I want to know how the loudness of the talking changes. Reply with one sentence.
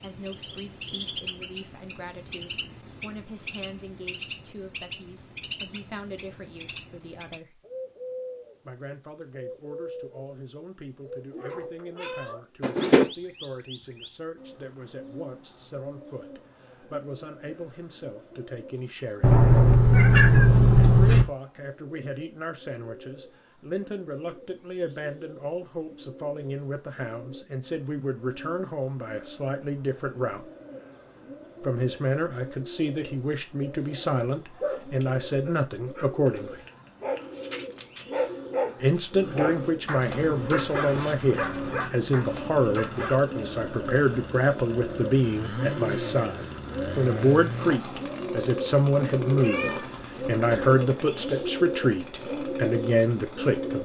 The loudness of the talking goes up.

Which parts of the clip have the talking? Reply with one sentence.
You can hear the talking from 0.0 to 7.6 s, from 8.7 to 19.4 s, from 20.8 to 30.5 s, from 31.6 to 36.6 s and from 38.8 to 53.8 s.